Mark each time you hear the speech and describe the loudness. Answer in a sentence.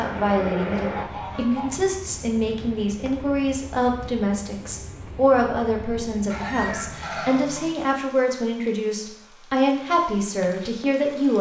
You can hear the speech from 0.0 to 11.3 s, at a steady volume.